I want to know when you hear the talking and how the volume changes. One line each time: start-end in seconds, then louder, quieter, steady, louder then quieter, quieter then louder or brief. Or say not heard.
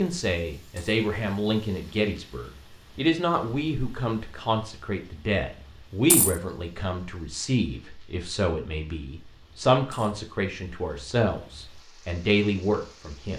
0.0-13.3 steady.